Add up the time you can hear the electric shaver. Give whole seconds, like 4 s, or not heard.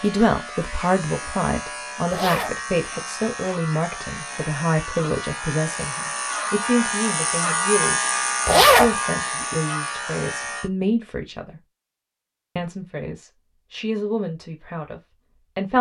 11 s.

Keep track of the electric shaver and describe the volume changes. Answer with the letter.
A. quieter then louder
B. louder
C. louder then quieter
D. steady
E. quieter
B.